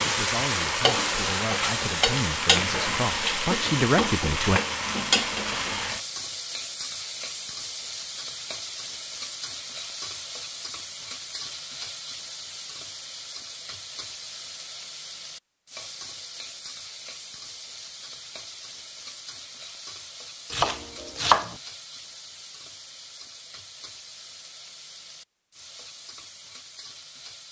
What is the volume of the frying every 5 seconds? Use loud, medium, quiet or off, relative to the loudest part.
loud, medium, quiet, quiet, quiet, quiet.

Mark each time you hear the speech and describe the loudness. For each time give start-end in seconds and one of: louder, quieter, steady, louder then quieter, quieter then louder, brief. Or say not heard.
0.0-4.6 louder.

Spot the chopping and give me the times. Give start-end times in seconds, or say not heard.
20.5-21.6.